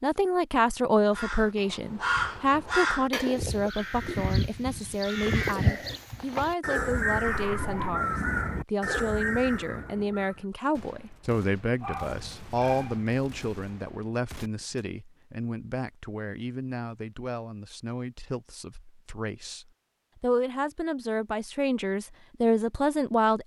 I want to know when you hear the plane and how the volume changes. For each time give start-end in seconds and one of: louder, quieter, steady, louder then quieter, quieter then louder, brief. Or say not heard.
not heard.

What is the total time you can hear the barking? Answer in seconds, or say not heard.
2 s.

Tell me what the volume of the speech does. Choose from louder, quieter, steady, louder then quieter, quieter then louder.
quieter then louder.